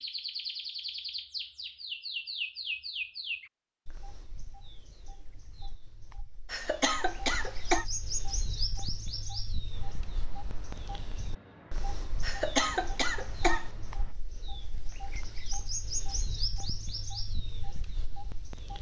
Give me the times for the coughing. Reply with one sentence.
The coughing can be heard from 6.5 to 7.8 s and from 12.2 to 13.7 s.